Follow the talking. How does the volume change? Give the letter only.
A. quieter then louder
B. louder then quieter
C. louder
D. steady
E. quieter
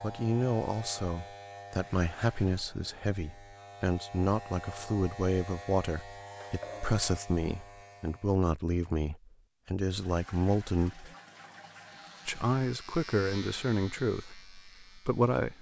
D.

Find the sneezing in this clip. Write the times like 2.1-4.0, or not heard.
not heard.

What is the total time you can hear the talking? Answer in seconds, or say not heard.
14 s.